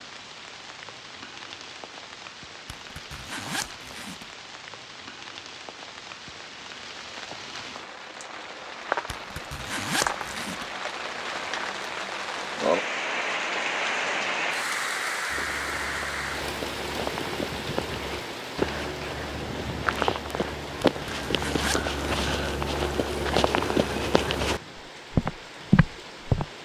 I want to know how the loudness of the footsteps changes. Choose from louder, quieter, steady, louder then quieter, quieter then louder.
louder.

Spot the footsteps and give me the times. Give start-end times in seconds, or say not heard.
15.3-26.4.